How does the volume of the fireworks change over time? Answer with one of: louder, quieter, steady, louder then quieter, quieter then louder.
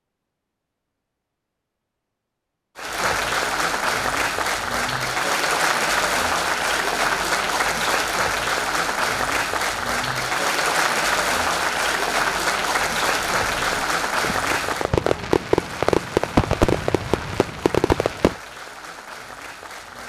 louder.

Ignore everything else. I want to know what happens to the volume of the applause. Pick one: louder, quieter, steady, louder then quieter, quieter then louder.
quieter.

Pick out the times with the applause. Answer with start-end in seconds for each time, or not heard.
2.8-20.0.